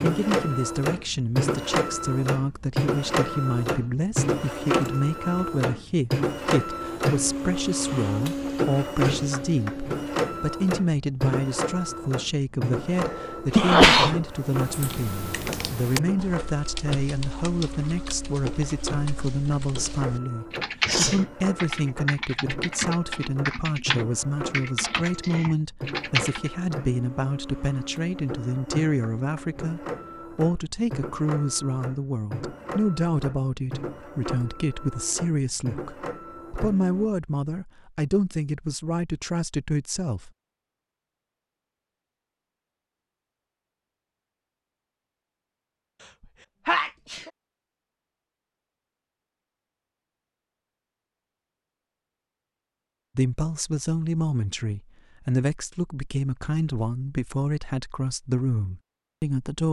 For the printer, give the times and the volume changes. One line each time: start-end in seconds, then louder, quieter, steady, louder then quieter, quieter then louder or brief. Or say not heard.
0.0-37.1 quieter.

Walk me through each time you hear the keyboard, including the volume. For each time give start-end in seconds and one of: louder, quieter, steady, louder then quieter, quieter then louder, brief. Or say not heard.
14.3-26.5 quieter then louder.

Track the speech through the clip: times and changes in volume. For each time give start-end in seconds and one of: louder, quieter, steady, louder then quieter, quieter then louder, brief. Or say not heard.
0.0-40.3 steady
53.1-59.6 steady.